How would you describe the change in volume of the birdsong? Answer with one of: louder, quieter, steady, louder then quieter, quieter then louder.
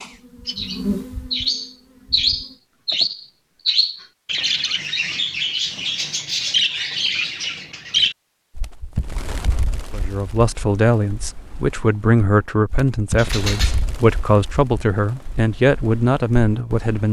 quieter.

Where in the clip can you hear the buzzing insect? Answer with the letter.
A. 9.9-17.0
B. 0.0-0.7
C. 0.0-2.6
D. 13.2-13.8
C.